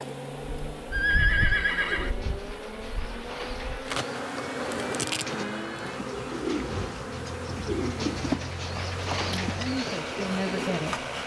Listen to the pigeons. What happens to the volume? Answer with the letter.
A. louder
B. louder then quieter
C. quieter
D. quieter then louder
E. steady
A.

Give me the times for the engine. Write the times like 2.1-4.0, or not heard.
0.0-11.2.